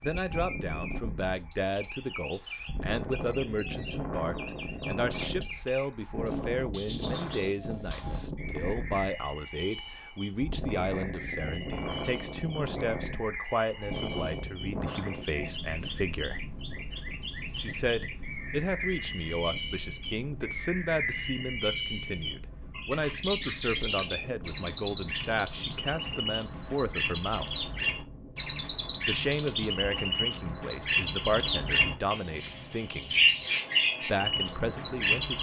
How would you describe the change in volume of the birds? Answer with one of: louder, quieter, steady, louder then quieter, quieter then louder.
louder.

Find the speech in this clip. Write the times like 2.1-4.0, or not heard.
0.0-16.4, 17.6-27.6, 29.1-33.1, 34.0-35.3.